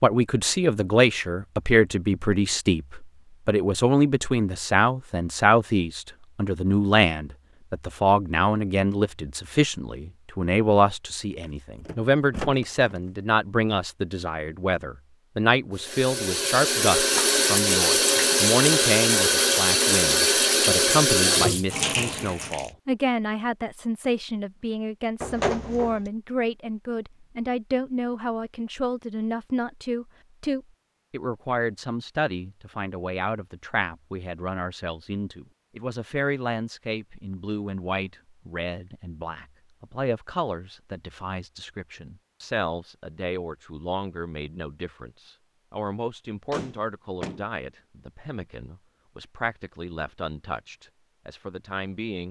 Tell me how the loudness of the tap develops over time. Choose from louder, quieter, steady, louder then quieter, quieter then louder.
steady.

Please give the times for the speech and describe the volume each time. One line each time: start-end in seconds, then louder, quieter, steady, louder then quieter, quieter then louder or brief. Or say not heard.
0.0-52.2 quieter.